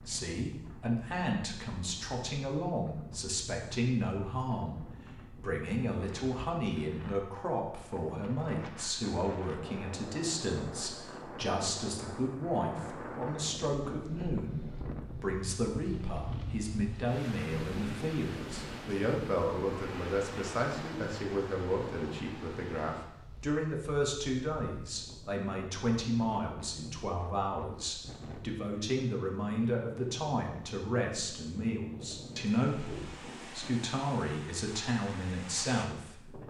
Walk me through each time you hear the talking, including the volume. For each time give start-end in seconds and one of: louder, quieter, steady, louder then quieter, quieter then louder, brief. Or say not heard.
0.1-36.4 steady.